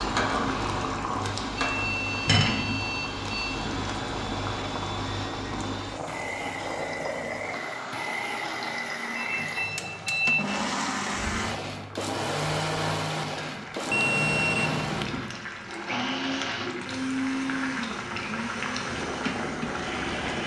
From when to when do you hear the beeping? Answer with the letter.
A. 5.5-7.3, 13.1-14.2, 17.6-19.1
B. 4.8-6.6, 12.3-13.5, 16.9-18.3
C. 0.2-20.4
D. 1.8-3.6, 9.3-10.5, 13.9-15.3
D.